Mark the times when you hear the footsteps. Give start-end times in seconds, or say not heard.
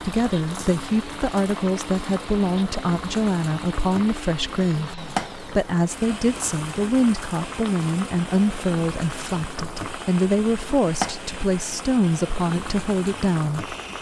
not heard.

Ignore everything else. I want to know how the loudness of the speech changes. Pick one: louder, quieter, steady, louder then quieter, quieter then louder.
steady.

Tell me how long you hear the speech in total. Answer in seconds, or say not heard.
14 s.